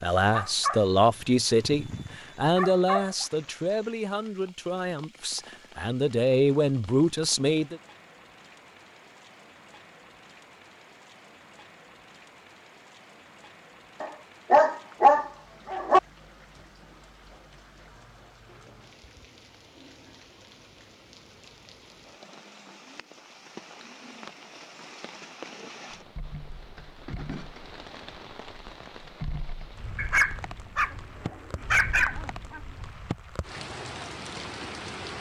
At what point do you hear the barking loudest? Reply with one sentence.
The volume of the barking peaks at 15 seconds.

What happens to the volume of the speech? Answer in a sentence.
The loudness of the speech goes down, then up.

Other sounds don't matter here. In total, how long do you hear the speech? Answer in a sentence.
You can hear the speech for 8 seconds altogether.